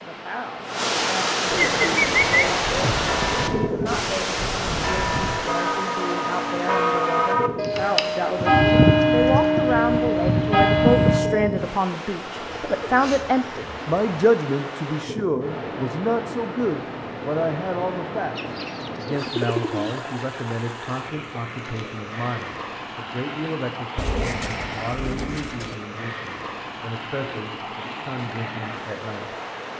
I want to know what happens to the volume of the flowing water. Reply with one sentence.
The volume of the flowing water goes down.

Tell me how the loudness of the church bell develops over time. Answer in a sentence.
The loudness of the church bell goes up.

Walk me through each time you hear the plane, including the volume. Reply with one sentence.
You can't hear the plane here.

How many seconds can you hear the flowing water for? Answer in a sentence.
You can hear the flowing water for 30 seconds altogether.